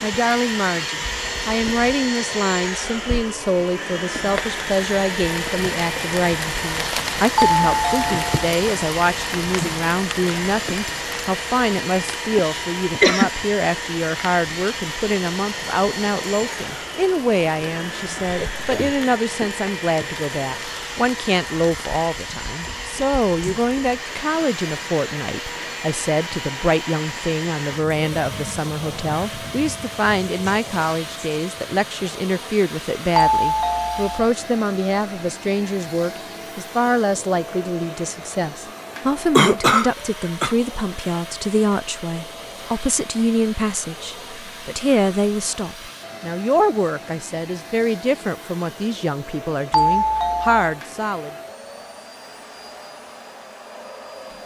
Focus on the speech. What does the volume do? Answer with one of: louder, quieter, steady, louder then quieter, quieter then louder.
steady.